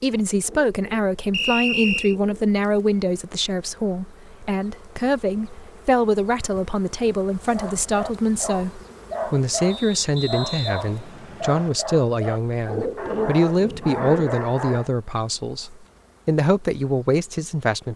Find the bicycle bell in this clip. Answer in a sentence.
The bicycle bell can't be heard in this clip.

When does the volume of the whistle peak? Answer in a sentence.
The volume of the whistle peaks at 2 seconds.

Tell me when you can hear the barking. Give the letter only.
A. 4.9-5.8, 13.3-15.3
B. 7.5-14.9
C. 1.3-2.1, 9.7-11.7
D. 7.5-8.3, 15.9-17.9
B.